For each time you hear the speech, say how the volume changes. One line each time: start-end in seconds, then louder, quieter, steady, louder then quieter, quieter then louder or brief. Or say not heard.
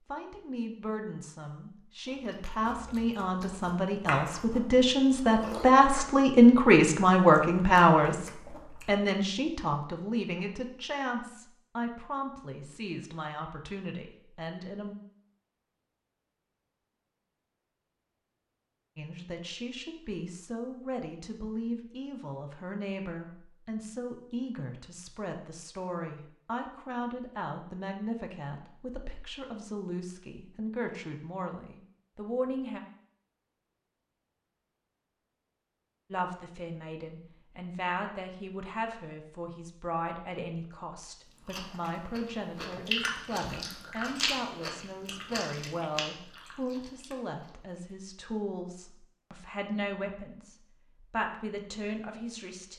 0.1-14.9 louder then quieter
18.9-32.8 steady
36.1-52.7 steady.